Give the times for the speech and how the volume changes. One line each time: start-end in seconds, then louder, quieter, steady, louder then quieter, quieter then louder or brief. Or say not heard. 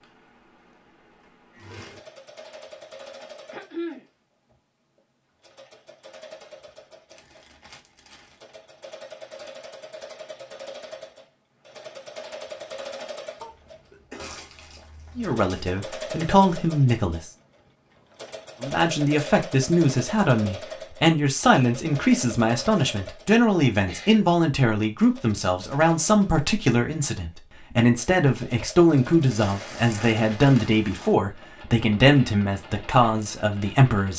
15.2-17.3 brief
18.6-34.1 steady.